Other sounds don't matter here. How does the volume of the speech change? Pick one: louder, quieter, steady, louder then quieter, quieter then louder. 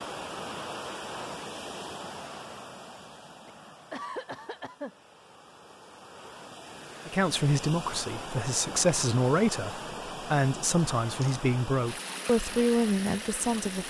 steady.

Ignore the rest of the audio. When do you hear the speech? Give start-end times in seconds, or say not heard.
7.0-13.8.